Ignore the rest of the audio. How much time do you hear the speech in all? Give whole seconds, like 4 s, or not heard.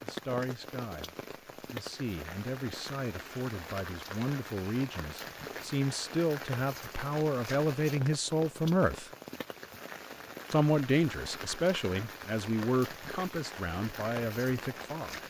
14 s.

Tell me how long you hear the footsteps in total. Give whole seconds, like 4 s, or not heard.
not heard.